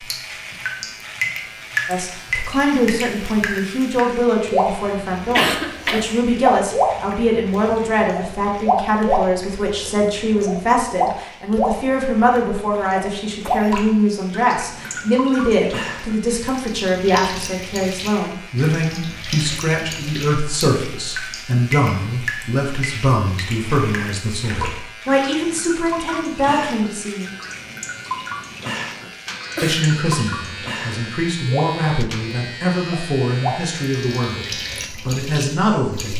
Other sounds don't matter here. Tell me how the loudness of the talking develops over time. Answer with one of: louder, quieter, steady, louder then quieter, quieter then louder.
steady.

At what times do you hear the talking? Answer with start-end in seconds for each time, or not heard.
1.9-27.3, 29.6-36.1.